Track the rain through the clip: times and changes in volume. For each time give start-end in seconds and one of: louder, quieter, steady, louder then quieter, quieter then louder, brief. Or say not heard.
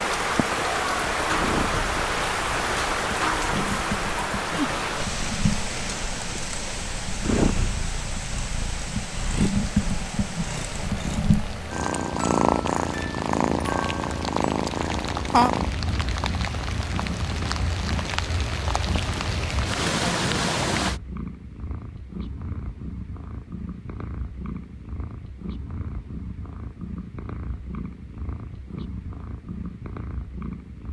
0.0-21.0 quieter then louder.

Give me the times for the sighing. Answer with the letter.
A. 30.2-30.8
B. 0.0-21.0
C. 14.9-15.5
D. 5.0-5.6
C.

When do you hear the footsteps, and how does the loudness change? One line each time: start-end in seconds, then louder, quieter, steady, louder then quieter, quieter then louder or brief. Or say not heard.
not heard.